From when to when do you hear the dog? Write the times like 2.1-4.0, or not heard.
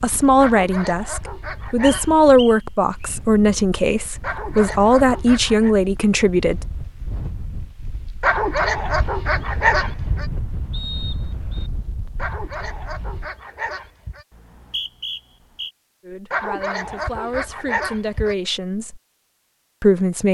0.4-2.4, 4.2-5.8, 8.2-10.2, 12.2-14.2, 16.3-18.4.